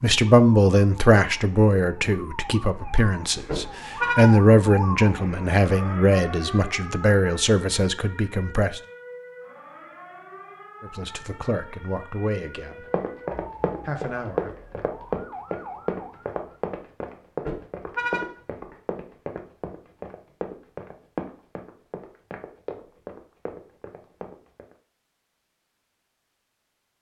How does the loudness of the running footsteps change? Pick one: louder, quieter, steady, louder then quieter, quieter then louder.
quieter.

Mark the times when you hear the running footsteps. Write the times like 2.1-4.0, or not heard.
12.9-24.8.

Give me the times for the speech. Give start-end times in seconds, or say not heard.
0.0-8.8, 10.8-12.8, 13.8-14.5.